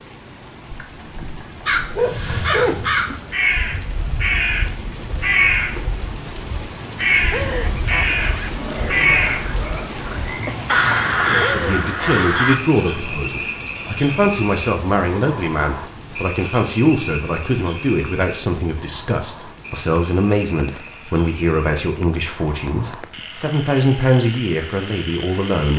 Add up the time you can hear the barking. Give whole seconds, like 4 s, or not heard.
2 s.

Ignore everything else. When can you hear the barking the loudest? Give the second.
2 s.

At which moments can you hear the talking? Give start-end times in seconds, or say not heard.
11.2-25.7.